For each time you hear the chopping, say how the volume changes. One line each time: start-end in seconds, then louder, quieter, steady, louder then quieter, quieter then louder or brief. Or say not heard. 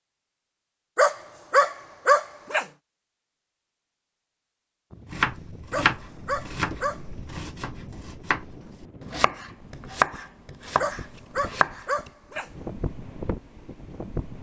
5.1-12.1 quieter then louder.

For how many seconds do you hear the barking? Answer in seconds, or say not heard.
5 s.